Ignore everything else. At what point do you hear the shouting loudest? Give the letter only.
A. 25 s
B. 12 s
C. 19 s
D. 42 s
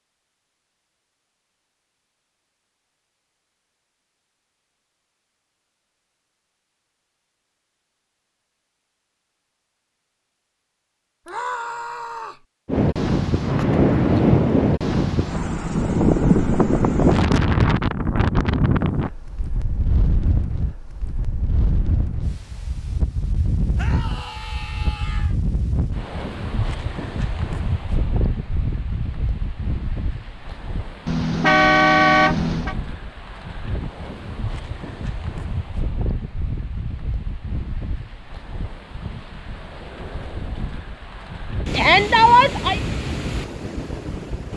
D.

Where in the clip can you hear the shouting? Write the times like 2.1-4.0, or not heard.
11.2-12.4, 23.8-25.4, 41.7-42.8.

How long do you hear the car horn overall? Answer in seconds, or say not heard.
2 s.